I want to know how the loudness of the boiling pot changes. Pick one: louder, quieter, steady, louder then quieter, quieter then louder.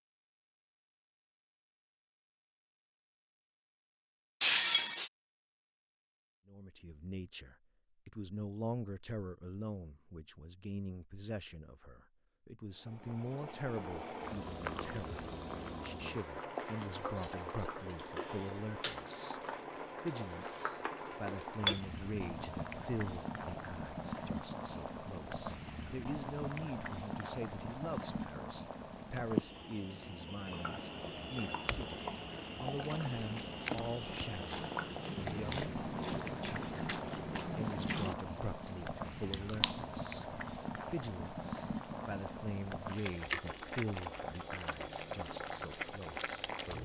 steady.